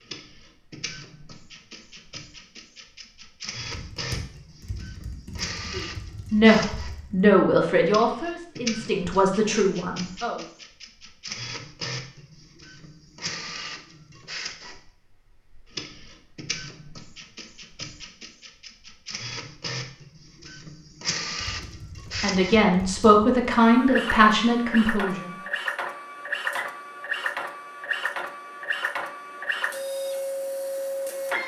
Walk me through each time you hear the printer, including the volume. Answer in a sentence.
You can hear the printer from 0.0 to 31.4 s, getting louder.